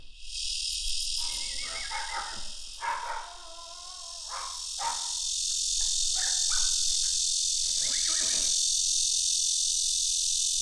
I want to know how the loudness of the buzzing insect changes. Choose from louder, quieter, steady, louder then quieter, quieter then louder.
quieter then louder.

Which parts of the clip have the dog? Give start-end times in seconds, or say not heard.
1.1-5.1, 5.8-7.1.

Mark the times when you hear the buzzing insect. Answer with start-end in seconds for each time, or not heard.
0.0-10.5.